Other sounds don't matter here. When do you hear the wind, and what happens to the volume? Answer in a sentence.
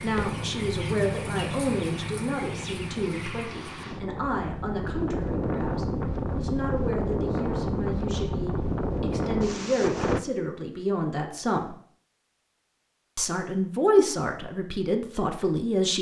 The wind can be heard from 0.0 to 10.2 s, getting louder.